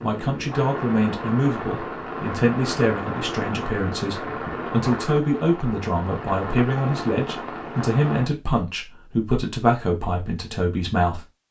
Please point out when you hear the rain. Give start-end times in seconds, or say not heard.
0.0-8.3.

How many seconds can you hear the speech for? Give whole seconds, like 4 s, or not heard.
11 s.